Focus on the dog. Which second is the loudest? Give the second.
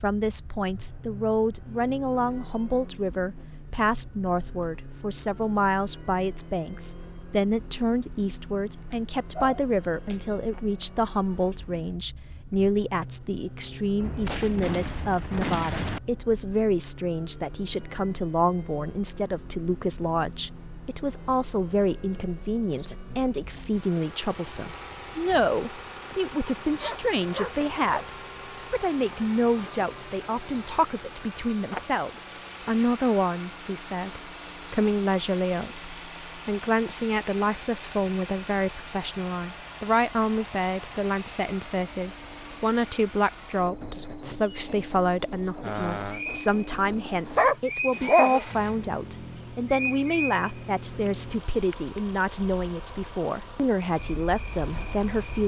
48 s.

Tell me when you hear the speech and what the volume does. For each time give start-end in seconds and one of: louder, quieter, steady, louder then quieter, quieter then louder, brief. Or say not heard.
0.0-28.1 steady
28.7-55.4 steady.